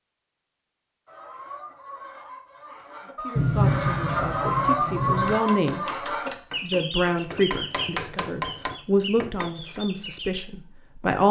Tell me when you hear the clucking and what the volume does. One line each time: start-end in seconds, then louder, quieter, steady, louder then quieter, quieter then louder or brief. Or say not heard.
1.1-10.3 louder then quieter.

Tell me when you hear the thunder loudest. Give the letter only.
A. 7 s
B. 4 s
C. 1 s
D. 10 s
B.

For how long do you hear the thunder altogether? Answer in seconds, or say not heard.
2 s.